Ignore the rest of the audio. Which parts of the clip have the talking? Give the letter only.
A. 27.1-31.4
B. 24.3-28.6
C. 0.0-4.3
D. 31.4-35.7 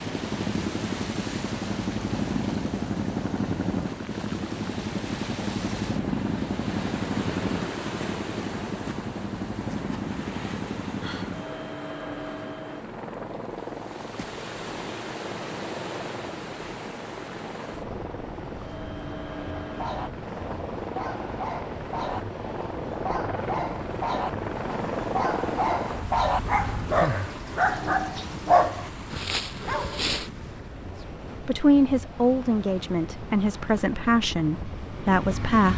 D.